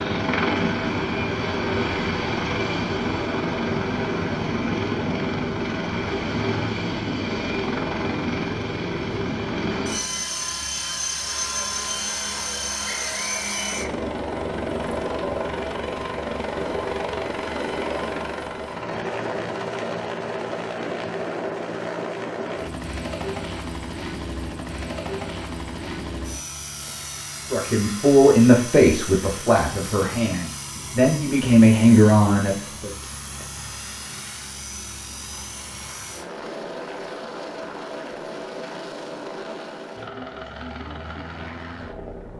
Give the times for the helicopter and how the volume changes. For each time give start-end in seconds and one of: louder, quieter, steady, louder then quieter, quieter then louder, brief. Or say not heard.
0.0-42.3 quieter.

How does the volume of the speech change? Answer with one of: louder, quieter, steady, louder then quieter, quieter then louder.
quieter then louder.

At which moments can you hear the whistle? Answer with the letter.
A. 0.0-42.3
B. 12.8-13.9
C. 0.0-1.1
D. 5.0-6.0
B.